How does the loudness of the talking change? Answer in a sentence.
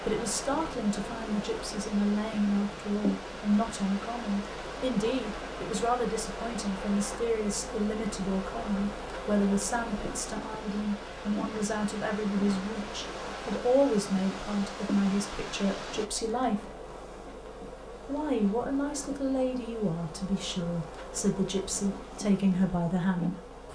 The loudness of the talking stays about the same.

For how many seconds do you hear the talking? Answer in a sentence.
You can hear the talking for 22 seconds altogether.